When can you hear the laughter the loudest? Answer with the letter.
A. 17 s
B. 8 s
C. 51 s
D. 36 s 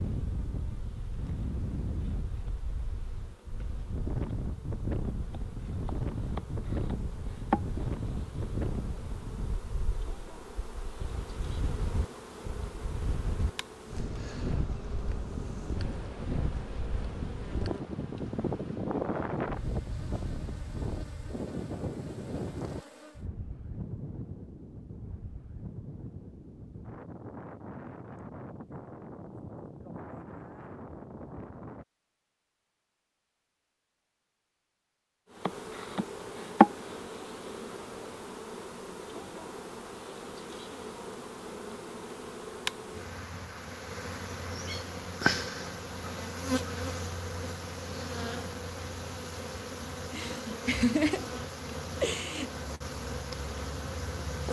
C.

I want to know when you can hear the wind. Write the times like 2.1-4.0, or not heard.
0.0-31.9.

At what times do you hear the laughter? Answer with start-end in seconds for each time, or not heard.
50.0-52.5.